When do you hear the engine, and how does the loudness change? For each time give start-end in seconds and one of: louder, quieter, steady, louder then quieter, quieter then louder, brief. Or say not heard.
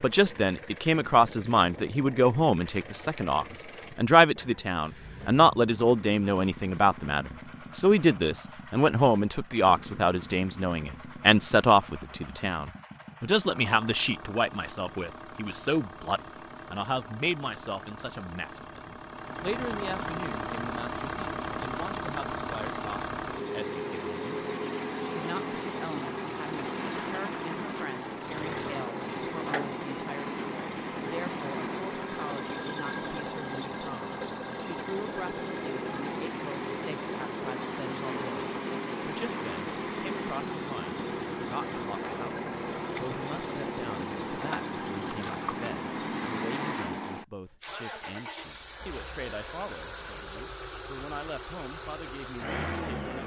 0.0-53.2 louder.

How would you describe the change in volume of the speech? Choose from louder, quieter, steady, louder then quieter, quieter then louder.
quieter.